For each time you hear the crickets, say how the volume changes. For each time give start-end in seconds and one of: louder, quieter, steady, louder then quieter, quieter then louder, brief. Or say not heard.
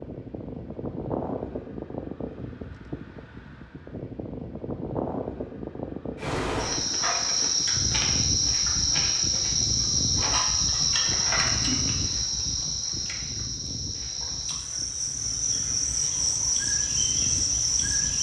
6.2-18.1 quieter then louder.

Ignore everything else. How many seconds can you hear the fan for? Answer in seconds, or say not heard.
18 s.